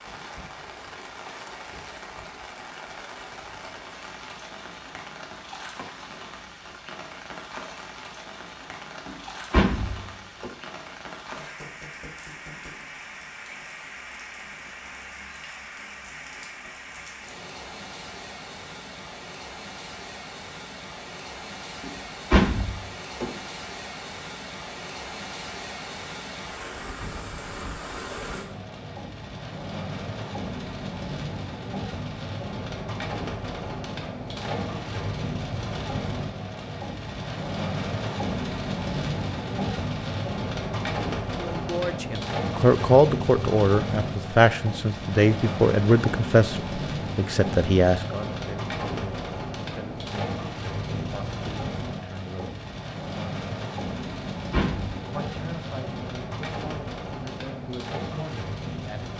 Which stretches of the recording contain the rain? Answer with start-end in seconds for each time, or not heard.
0.0-59.1.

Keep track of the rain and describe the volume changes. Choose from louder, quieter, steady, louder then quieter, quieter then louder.
louder.